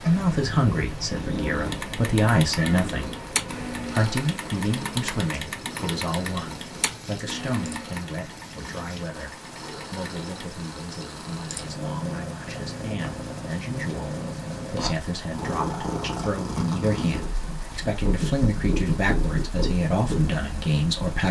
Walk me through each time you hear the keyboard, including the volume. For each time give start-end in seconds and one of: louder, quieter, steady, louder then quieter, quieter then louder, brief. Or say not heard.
1.6-10.5 quieter.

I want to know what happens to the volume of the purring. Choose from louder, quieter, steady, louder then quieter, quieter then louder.
quieter then louder.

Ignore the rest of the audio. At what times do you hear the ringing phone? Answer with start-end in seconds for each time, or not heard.
not heard.